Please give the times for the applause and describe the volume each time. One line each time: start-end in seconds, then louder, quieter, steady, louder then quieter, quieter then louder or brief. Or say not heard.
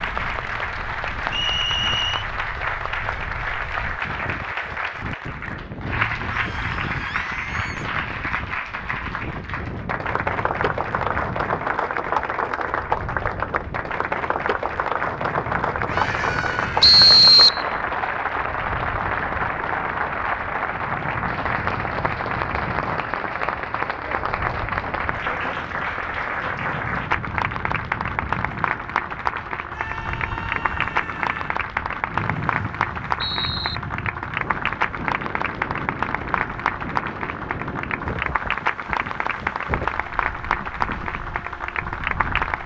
0.0-42.6 steady.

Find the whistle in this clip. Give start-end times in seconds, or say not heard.
1.3-2.2, 16.8-17.6, 32.1-33.8.